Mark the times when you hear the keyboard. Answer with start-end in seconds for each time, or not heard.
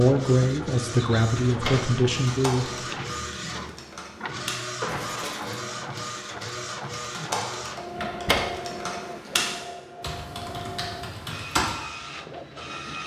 2.1-11.8.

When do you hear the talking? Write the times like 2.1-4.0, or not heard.
0.0-2.6.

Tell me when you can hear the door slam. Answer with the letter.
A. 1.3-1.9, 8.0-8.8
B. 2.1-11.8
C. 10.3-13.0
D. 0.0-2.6
A.